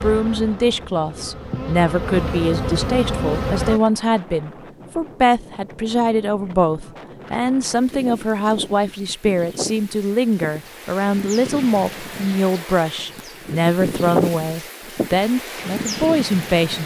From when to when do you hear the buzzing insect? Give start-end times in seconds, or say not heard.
0.0-3.8.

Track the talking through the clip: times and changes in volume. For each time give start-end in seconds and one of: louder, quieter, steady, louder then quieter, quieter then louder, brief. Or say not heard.
0.0-16.8 steady.